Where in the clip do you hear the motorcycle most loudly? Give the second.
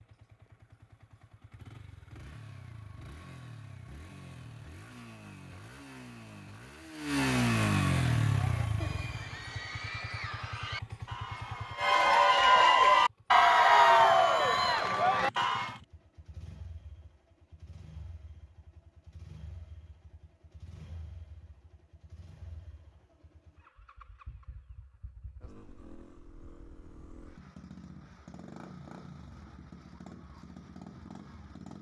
8 s.